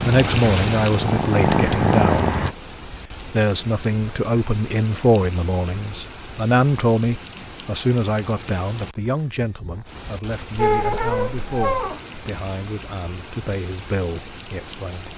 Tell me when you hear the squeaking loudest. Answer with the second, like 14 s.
11 s.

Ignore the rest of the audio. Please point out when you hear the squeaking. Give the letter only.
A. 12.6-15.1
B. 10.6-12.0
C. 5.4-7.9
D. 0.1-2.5
B.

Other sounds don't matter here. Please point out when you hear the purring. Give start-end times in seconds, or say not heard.
0.1-2.5.